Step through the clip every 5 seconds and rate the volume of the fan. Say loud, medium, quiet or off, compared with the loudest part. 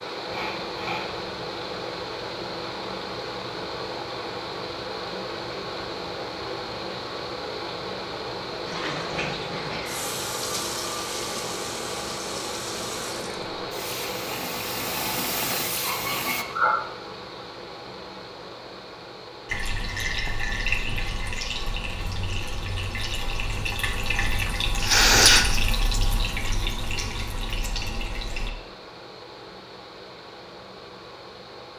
loud, loud, loud, medium, medium, medium, medium.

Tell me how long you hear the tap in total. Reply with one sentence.
The tap can be heard for 17 seconds in total.